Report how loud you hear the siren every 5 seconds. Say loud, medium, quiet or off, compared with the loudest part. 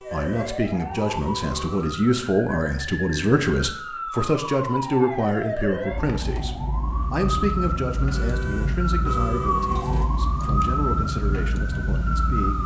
medium, loud, loud.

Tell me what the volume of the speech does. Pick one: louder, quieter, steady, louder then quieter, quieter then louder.
quieter.